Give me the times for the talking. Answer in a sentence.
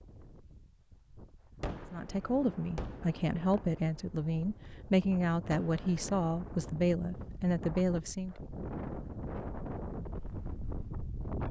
The talking can be heard from 1.9 to 8.3 s.